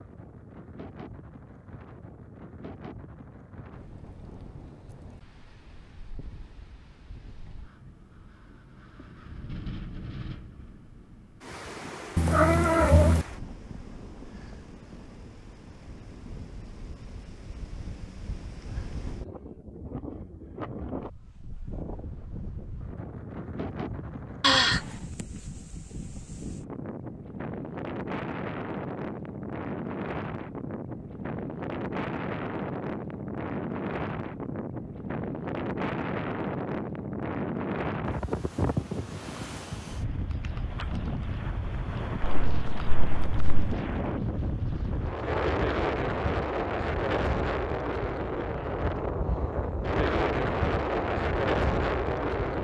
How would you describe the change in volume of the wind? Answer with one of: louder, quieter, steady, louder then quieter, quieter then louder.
louder.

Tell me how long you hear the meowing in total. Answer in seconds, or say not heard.
3 s.